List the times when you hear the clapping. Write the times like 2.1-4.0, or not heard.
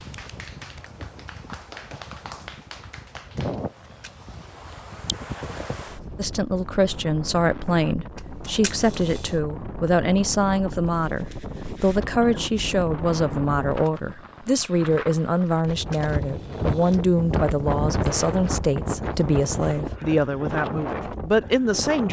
0.0-3.6.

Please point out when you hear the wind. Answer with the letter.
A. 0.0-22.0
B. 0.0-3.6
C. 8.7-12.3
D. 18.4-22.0
A.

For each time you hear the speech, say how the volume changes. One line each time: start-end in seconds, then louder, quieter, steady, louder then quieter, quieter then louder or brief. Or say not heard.
6.2-22.0 steady.